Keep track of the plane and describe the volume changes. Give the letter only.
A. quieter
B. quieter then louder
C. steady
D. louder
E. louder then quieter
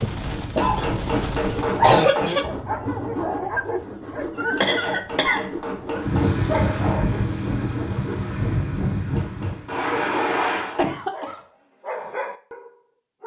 C.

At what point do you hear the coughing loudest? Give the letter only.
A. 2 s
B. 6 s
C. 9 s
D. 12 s
A.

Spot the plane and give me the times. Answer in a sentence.
You can hear the plane from 6.0 to 10.8 s.